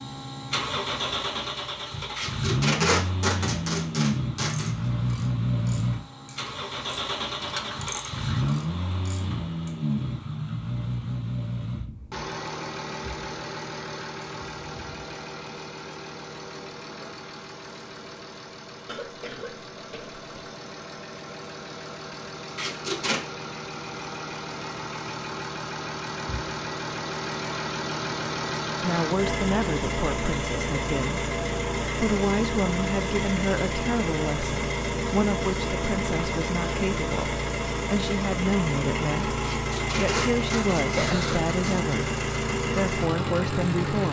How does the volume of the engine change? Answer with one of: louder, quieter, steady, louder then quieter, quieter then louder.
quieter then louder.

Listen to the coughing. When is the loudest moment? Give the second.
41 s.